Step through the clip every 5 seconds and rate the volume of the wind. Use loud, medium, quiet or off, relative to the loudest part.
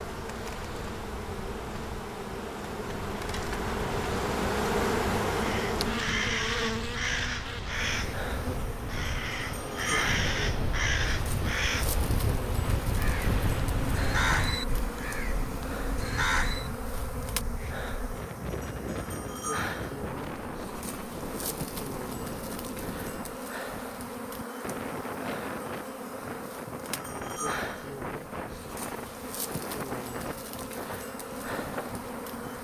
quiet, medium, loud, medium, medium, medium, medium.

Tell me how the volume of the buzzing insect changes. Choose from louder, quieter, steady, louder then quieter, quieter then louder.
quieter.